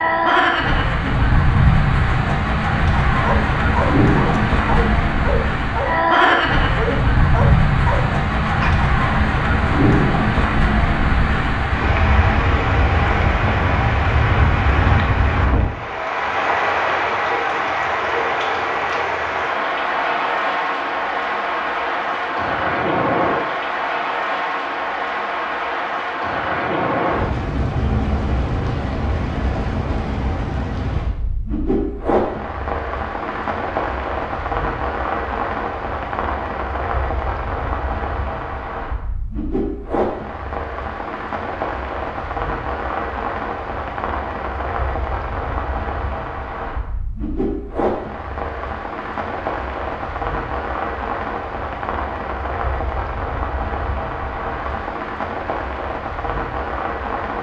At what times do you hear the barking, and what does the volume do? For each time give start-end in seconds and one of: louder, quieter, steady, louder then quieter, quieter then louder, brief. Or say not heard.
3.2-8.8 steady.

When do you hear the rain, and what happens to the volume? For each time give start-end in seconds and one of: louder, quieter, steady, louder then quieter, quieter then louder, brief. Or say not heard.
0.0-57.3 quieter.